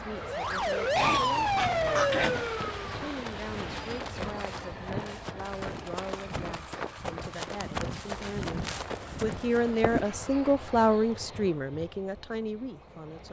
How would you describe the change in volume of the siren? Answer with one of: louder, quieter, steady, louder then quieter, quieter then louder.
quieter.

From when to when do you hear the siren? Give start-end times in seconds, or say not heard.
0.0-4.1.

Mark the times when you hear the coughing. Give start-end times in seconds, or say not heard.
0.9-2.4.